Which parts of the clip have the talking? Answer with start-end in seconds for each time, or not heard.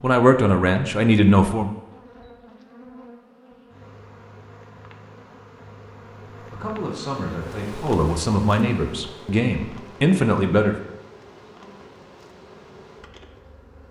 0.0-1.7, 6.3-10.8.